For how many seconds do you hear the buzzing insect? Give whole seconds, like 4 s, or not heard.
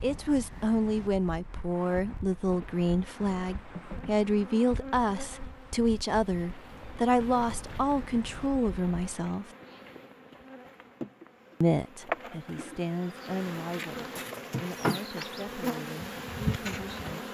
15 s.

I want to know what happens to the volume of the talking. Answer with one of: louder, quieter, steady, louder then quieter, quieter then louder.
quieter.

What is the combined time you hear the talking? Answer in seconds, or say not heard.
15 s.